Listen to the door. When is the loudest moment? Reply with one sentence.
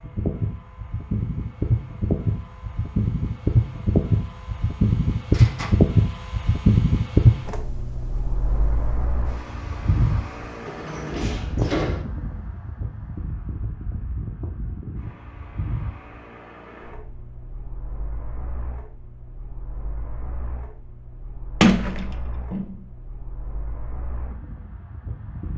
The loudest moment of the door is at 22 seconds.